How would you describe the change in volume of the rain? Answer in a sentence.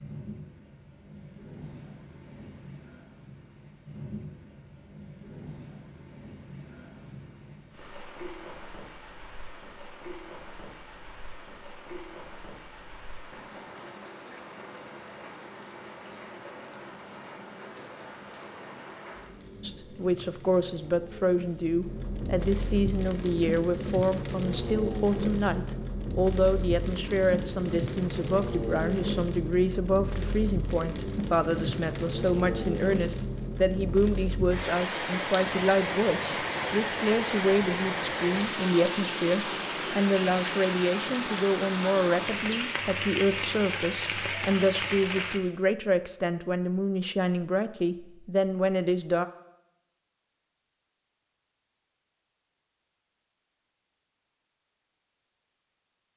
The loudness of the rain goes up.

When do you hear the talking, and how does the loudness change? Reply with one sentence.
You can hear the talking from 19.6 to 49.2 s, at a steady volume.